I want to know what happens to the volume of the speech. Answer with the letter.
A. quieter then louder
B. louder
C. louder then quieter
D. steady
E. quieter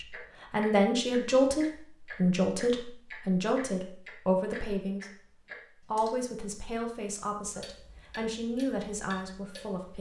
E.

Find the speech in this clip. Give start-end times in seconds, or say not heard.
0.0-5.2, 5.8-9.9.